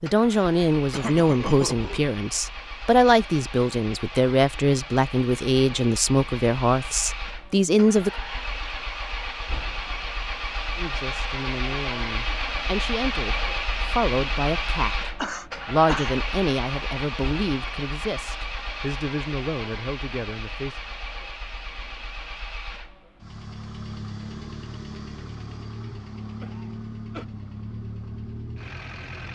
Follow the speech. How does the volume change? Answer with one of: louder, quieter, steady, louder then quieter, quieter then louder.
quieter.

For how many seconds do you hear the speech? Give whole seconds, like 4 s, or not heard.
18 s.